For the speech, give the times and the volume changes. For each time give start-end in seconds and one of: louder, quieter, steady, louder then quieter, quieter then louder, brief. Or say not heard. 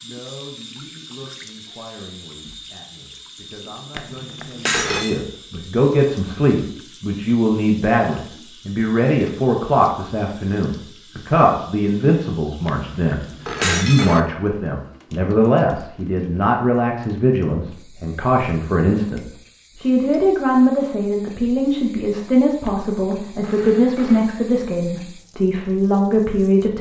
0.0-26.7 louder.